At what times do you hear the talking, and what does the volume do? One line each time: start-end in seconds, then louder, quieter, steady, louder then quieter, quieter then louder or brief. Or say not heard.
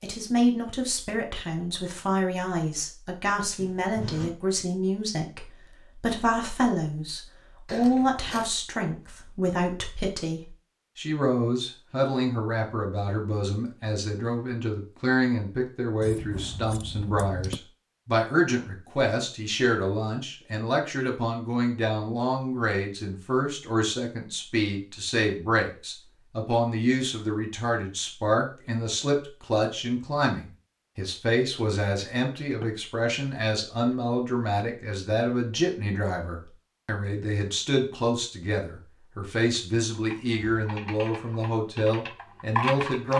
0.0-43.1 steady.